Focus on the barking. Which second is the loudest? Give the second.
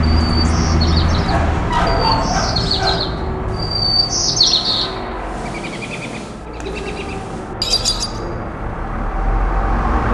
2 s.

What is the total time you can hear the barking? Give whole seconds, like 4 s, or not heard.
4 s.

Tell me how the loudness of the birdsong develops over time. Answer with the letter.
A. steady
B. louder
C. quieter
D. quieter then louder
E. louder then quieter
E.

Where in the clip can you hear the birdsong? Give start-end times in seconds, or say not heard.
0.0-8.1.